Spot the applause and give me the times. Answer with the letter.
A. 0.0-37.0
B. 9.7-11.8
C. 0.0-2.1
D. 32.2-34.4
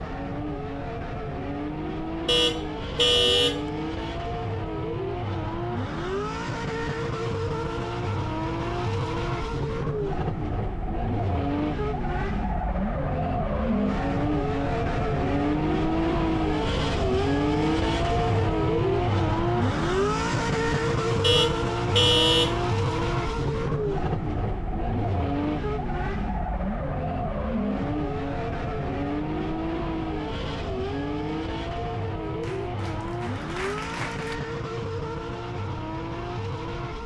D.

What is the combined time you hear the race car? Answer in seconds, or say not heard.
37 s.